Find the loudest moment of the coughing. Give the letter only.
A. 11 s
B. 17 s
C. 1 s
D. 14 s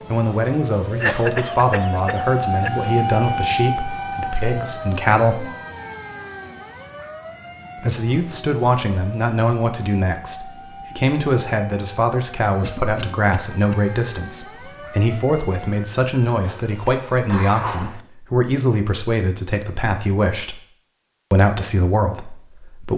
C.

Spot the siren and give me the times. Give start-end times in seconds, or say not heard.
0.0-17.3.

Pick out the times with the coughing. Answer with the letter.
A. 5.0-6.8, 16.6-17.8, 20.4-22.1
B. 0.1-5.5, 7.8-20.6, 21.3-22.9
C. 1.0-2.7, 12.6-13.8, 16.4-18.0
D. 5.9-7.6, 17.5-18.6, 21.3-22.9
C.